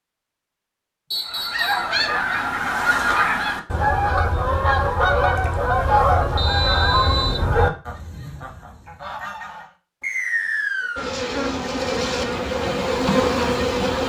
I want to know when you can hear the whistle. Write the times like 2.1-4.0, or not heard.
1.1-1.9, 6.3-7.4, 10.0-11.2.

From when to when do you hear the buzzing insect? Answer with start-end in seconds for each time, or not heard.
10.9-14.0.